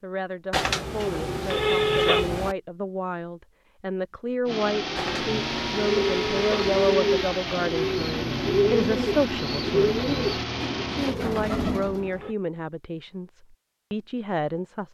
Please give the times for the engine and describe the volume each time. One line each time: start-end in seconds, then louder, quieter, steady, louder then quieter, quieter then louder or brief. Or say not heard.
4.5-11.2 steady.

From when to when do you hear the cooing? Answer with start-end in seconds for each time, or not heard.
4.7-12.2.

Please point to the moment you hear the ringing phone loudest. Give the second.
2 s.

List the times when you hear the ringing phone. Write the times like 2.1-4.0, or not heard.
0.5-2.5, 5.0-7.0, 11.2-12.3.